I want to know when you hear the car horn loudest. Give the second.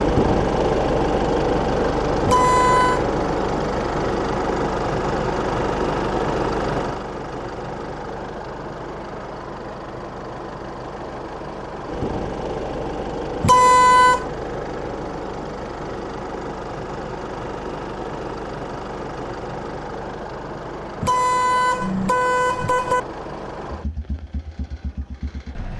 14 s.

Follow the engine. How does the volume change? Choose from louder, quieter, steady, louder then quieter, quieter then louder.
quieter.